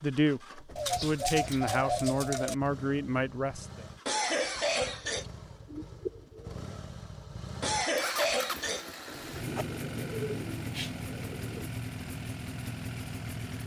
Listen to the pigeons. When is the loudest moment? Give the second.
2 s.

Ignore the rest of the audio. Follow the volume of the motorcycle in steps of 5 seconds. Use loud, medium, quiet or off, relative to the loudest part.
medium, loud, loud.